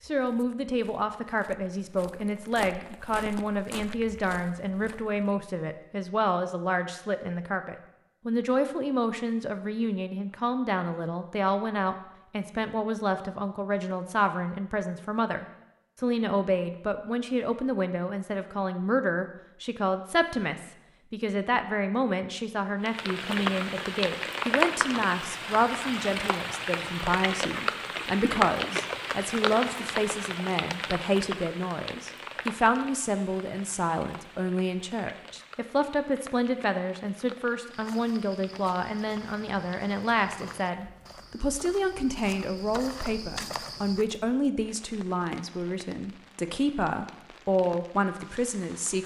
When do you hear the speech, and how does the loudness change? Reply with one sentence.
The speech can be heard from 0.1 to 49.0 s, at a steady volume.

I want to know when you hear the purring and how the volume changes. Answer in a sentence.
You can't hear the purring here.